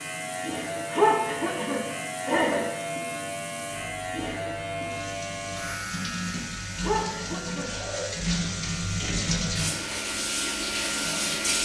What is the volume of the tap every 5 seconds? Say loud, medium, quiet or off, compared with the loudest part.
quiet, loud, loud.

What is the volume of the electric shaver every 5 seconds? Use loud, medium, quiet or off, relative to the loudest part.
loud, medium, loud.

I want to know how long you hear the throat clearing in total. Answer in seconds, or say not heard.
3 s.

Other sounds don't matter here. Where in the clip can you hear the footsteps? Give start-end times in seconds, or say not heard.
not heard.